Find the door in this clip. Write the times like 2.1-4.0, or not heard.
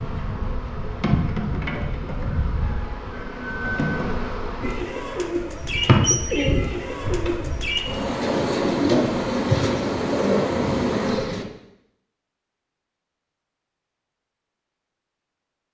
not heard.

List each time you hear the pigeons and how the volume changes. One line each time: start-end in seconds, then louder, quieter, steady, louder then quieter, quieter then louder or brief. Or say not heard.
4.6-11.4 steady.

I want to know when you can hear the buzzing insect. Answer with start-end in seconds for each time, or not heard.
0.0-11.3.